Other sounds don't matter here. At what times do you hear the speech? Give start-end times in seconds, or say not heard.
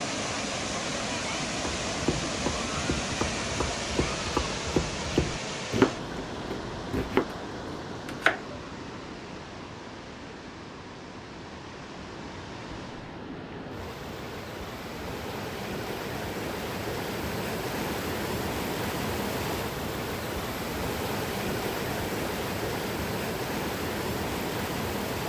not heard.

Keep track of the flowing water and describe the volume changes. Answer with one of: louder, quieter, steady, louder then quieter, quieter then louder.
quieter then louder.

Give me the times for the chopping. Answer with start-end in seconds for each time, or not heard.
1.8-8.4.